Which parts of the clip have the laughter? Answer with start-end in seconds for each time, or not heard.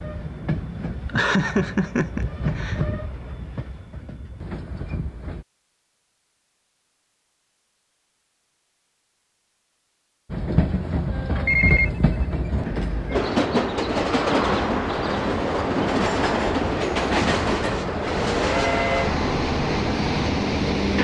1.1-2.8.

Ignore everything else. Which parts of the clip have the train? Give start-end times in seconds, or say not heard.
0.0-5.5, 10.3-20.9.